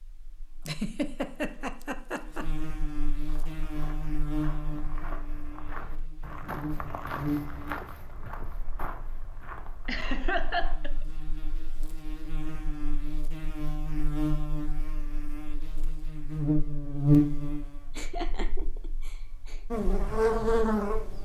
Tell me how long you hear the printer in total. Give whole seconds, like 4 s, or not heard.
not heard.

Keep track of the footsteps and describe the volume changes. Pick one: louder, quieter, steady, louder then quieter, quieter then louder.
louder then quieter.